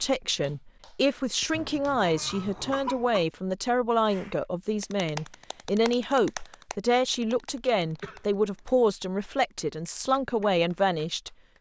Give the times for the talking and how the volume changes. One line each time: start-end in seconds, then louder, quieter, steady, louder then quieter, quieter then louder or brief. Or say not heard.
0.0-11.3 steady.